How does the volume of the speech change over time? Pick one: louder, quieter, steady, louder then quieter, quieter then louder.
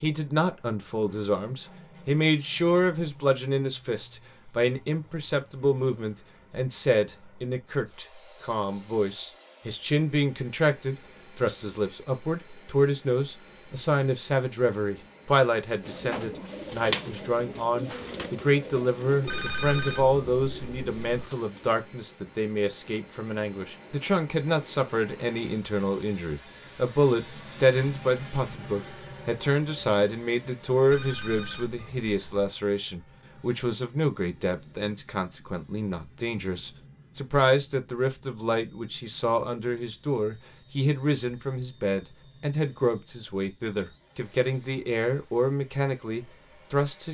steady.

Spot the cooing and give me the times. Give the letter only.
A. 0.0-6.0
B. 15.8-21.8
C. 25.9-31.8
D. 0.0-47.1
B.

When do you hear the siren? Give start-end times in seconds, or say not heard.
not heard.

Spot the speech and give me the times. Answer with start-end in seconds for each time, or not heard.
0.0-47.1.